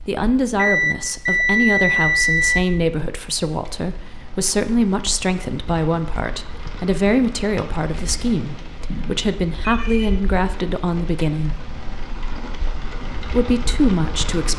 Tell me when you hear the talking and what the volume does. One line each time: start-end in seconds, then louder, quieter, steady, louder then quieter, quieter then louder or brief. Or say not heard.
0.1-11.6 steady
13.3-14.5 brief.